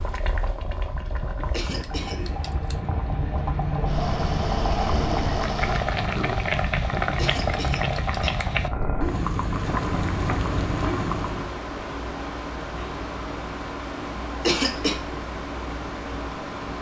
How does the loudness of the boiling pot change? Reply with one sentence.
The volume of the boiling pot goes up.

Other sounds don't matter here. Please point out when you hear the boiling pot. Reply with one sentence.
The boiling pot can be heard from 0.0 to 11.6 s.